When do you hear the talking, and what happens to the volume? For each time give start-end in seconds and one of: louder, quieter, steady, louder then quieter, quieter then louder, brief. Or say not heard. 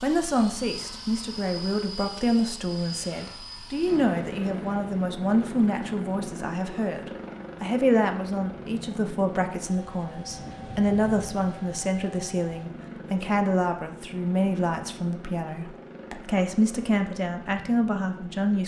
0.0-18.6 steady.